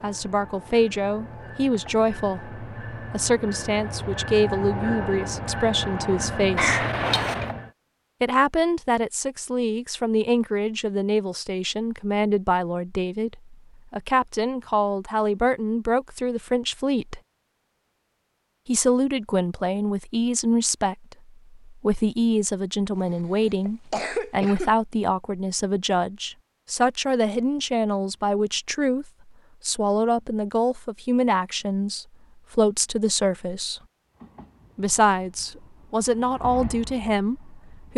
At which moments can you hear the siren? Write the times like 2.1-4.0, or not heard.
not heard.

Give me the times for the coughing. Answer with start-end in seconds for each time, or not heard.
6.5-7.5, 22.9-24.7.